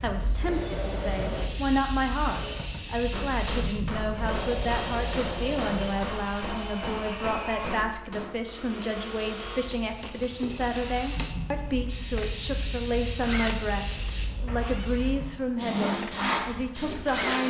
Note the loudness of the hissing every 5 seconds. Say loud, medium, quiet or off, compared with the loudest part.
medium, quiet, medium, loud.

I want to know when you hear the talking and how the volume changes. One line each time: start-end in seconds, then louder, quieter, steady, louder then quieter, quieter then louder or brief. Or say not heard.
0.0-17.4 steady.